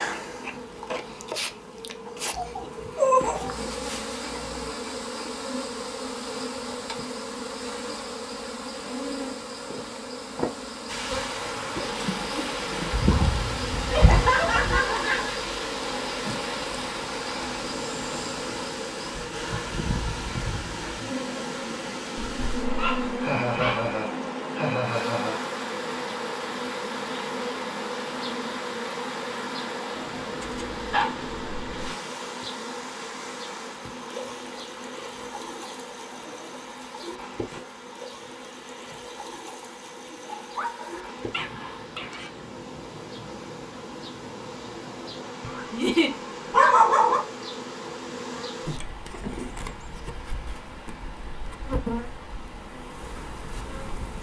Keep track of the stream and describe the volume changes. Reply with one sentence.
The volume of the stream goes down.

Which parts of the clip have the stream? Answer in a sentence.
The stream can be heard from 10.8 to 54.1 s.